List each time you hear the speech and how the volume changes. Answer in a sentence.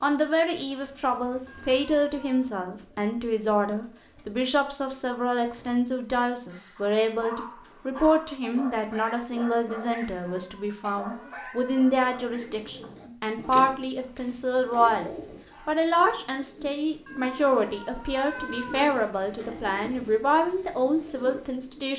You can hear the speech from 0.0 to 21.9 s, at a steady volume.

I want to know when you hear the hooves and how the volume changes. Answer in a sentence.
You can't hear the hooves here.